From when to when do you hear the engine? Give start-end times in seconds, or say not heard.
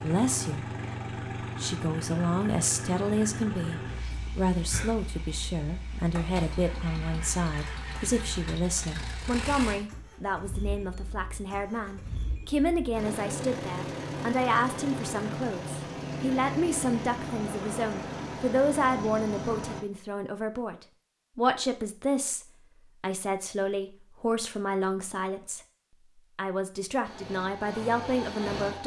0.0-19.8, 27.0-28.8.